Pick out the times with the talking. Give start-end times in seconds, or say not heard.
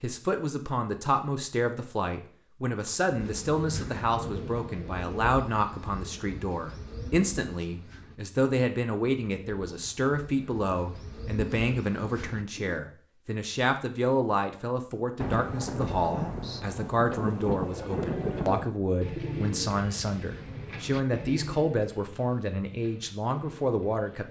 0.0-24.2.